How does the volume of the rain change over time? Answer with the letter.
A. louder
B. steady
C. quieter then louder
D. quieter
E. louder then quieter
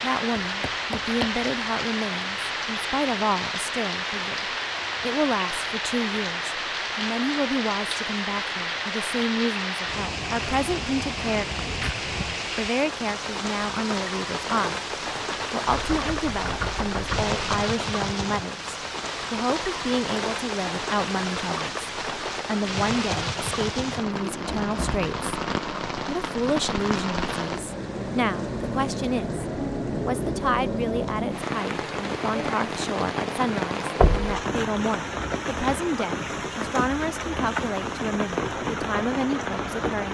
B.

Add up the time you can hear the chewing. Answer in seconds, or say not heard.
not heard.